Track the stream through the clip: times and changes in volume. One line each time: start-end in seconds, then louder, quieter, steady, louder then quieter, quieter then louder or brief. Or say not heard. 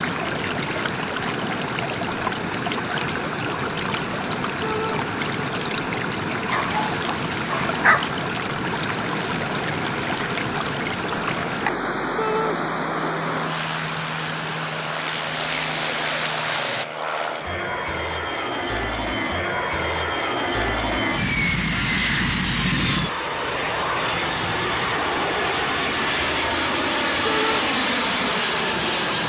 0.0-16.9 steady.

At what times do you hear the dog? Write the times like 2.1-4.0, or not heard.
6.5-8.2.